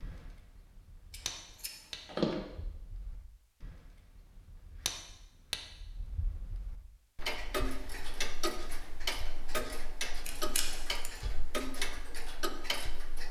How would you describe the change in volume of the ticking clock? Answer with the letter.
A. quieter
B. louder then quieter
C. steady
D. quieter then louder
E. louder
E.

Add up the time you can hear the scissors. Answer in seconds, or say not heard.
2 s.